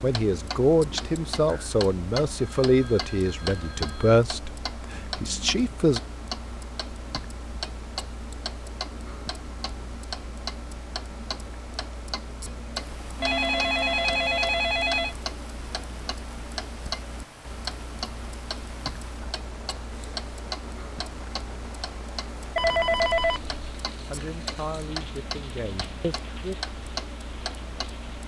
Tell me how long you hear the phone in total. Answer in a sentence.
You can hear the phone for 5 seconds altogether.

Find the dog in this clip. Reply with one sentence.
You can't hear the dog here.